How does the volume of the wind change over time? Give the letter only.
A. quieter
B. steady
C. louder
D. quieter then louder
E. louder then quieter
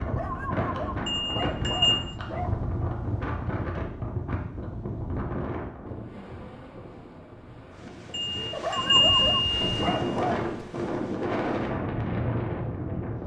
D.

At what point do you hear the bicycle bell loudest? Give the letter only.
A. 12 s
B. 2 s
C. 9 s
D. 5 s
C.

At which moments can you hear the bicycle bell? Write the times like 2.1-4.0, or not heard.
1.1-2.0, 8.1-10.2.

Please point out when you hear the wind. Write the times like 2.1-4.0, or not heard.
0.0-13.2.